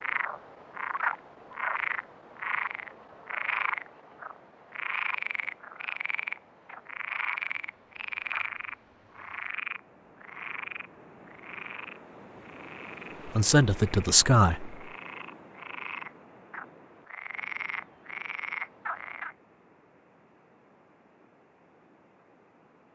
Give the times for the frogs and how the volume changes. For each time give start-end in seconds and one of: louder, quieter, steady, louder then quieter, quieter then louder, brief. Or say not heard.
0.0-19.4 quieter then louder.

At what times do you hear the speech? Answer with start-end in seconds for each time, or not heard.
13.2-14.8.